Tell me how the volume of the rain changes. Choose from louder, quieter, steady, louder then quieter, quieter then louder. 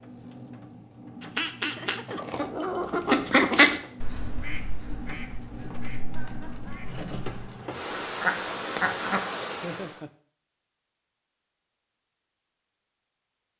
louder.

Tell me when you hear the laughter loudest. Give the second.
10 s.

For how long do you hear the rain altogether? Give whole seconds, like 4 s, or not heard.
10 s.